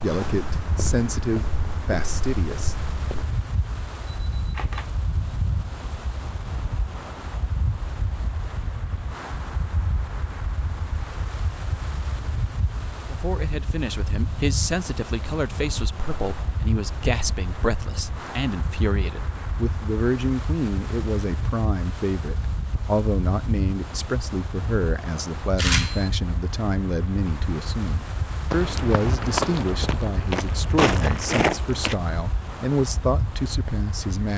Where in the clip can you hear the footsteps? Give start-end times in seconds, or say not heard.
0.0-3.2, 28.5-31.9.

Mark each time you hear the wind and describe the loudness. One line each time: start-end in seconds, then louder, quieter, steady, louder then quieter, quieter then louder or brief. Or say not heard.
0.0-34.3 steady.